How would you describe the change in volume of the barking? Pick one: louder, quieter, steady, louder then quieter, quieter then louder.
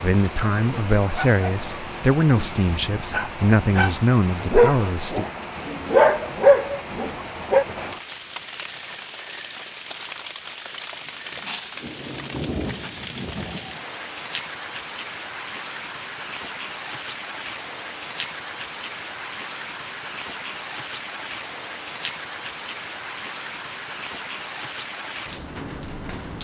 louder.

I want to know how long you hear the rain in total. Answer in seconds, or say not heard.
26 s.